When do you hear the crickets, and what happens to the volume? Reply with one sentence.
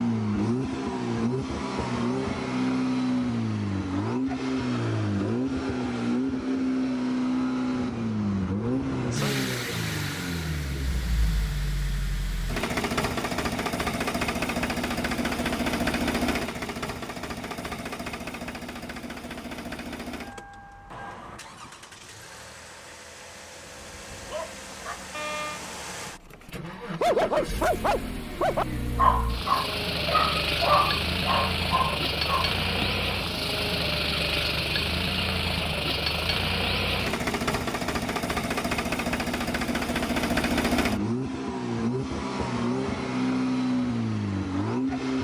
You can't hear the crickets here.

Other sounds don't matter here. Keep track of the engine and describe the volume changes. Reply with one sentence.
The loudness of the engine goes down, then up.